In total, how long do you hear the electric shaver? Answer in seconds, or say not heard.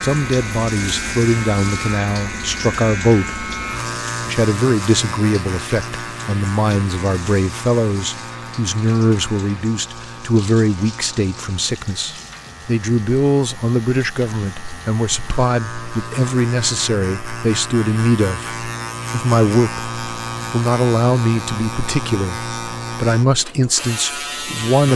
25 s.